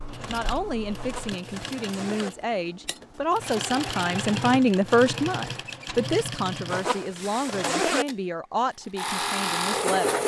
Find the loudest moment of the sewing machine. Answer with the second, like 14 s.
10 s.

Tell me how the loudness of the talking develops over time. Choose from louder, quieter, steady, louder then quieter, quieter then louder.
louder then quieter.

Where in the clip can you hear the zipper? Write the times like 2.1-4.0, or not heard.
0.9-2.3, 6.7-8.1.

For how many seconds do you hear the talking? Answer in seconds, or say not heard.
10 s.